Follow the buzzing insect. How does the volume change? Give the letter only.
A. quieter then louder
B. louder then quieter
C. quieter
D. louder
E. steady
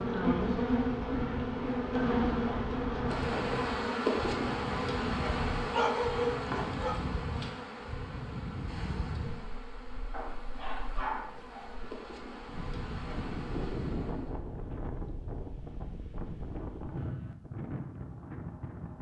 C.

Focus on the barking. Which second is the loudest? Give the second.
6 s.